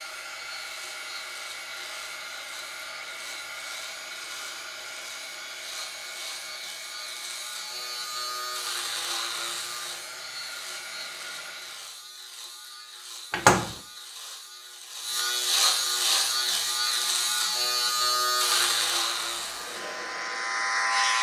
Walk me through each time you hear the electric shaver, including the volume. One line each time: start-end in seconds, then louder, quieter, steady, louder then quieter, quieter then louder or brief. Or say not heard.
0.0-21.1 louder.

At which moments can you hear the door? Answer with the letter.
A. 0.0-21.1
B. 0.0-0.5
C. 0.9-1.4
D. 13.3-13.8
D.